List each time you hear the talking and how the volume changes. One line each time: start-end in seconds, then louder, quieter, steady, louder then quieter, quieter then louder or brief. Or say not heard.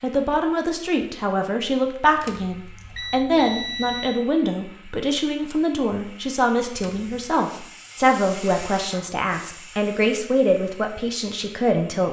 0.0-12.0 steady.